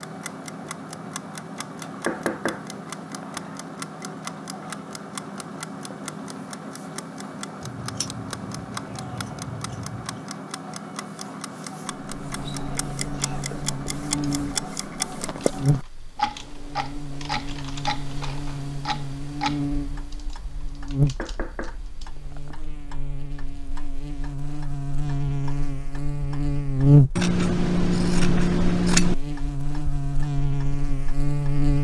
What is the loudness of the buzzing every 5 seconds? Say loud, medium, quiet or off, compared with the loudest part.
off, off, medium, medium, medium, loud, loud.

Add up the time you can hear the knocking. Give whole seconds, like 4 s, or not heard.
3 s.